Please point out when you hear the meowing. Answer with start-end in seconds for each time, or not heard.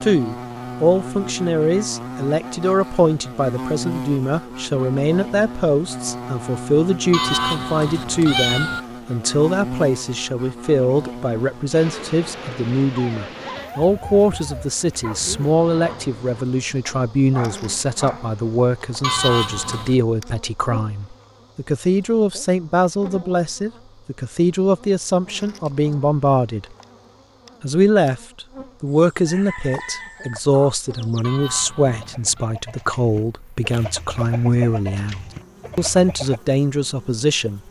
7.1-8.8, 19.0-20.0, 31.2-32.5.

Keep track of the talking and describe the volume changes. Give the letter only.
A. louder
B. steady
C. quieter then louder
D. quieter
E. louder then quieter
B.